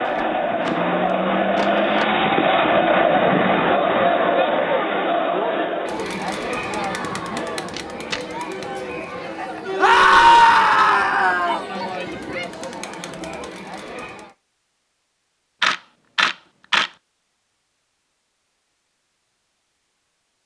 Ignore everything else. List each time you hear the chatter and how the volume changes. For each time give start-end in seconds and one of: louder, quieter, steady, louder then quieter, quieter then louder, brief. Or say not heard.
0.0-14.3 quieter.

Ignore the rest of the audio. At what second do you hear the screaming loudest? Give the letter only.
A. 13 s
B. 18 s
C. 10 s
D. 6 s
C.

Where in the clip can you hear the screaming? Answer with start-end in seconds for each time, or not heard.
9.8-11.6.